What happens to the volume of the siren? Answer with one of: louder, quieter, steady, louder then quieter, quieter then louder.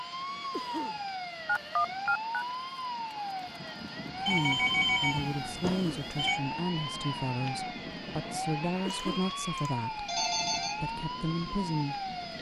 steady.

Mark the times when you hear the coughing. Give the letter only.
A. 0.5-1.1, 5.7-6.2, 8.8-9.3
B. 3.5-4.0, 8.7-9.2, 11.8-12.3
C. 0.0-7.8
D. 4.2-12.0
A.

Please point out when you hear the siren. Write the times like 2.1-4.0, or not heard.
0.0-12.3.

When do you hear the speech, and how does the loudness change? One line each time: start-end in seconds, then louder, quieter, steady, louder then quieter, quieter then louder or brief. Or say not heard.
4.2-12.0 steady.